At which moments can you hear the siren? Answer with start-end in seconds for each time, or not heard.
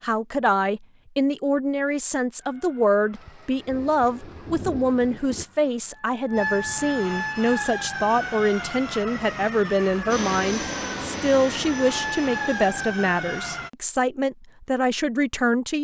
2.4-13.7.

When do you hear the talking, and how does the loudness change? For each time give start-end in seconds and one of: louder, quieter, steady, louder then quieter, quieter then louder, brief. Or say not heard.
0.0-15.7 steady.